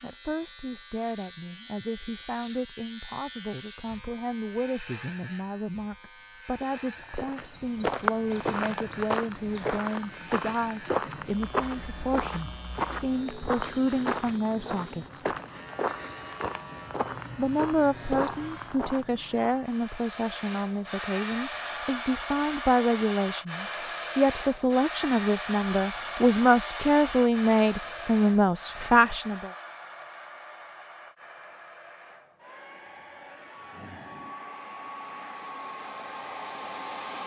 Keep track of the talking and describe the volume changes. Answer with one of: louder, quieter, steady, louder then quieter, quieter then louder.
louder.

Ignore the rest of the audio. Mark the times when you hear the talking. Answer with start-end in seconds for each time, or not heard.
0.0-15.2, 17.4-29.5.